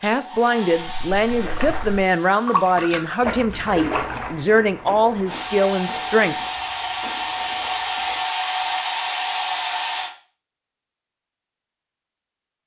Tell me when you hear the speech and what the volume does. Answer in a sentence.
The speech can be heard from 0.0 to 6.3 s, at a steady volume.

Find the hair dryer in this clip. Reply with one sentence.
You can hear the hair dryer from 0.0 to 2.9 s and from 5.2 to 10.1 s.